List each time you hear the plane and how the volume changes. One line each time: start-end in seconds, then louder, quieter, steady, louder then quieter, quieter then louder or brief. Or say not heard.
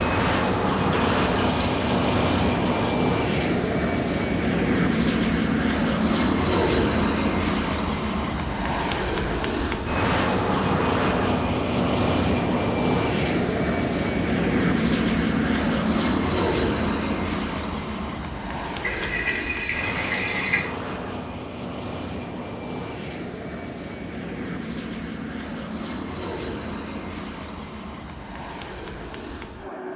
0.0-29.9 quieter.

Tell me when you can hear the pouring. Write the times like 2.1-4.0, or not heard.
0.9-3.0, 18.8-20.7.